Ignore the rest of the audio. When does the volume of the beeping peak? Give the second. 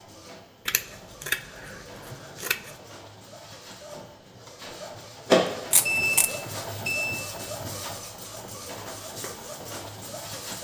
6 s.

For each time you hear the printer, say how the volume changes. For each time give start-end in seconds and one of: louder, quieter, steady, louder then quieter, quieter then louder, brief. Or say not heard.
0.0-10.5 louder then quieter.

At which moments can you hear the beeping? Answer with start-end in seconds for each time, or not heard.
5.4-7.3.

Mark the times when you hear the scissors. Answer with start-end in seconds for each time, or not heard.
0.7-2.8, 5.7-6.3.